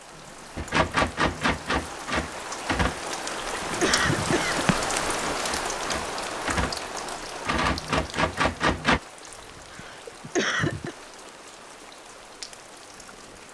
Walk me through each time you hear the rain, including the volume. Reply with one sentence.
You can hear the rain from 0.0 to 13.4 s, getting louder then quieter.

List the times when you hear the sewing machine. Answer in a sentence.
You can't hear the sewing machine here.